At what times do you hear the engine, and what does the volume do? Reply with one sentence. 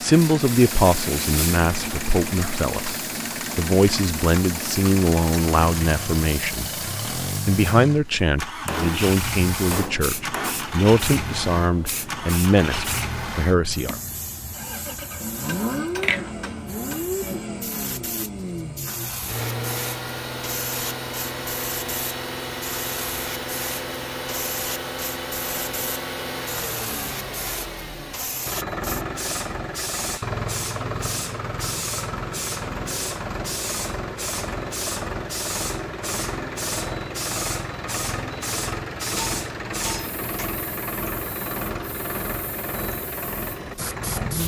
You can hear the engine from 0.0 to 44.4 s, at a steady volume.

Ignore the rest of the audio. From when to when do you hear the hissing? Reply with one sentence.
The hissing can be heard from 0.0 to 44.4 s.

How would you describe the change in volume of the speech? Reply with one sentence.
The loudness of the speech stays about the same.